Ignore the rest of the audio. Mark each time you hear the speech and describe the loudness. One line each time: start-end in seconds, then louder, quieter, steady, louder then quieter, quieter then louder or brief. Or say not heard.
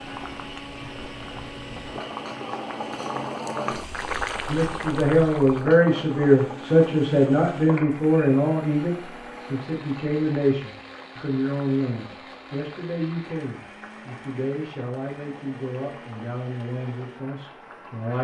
4.5-18.1 quieter.